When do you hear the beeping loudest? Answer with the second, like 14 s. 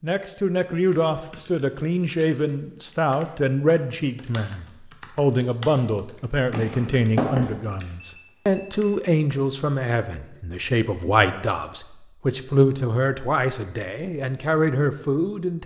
7 s.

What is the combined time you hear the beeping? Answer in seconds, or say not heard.
2 s.